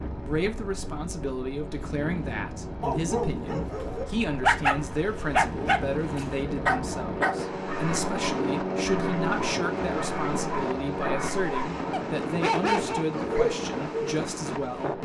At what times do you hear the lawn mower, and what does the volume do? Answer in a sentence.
You can hear the lawn mower from 0.0 to 15.0 s, getting louder then quieter.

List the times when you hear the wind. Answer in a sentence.
The wind can be heard from 0.0 to 15.0 s.